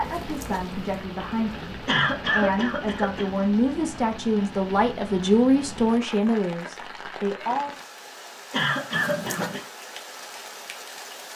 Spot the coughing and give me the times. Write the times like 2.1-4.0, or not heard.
1.9-3.3, 8.5-9.7.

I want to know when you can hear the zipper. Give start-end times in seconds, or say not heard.
0.0-1.1, 8.9-9.7.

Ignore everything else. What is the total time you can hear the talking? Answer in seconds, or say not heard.
8 s.